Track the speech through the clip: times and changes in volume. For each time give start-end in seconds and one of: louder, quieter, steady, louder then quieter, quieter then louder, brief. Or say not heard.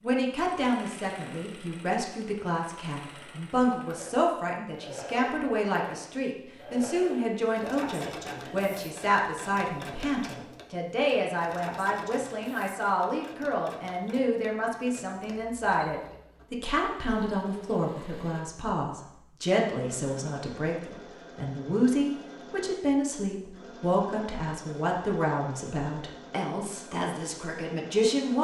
0.0-28.3 steady.